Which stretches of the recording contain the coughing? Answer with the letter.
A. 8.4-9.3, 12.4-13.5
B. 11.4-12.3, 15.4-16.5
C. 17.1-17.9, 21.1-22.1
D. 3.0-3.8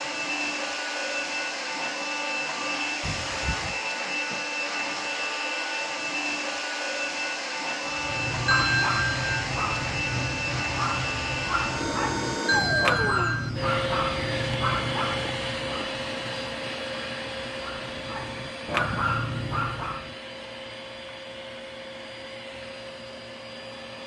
D.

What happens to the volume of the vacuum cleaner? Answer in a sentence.
The loudness of the vacuum cleaner goes down.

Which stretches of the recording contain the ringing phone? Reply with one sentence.
You can hear the ringing phone from 8.4 to 9.3 s and from 12.4 to 13.5 s.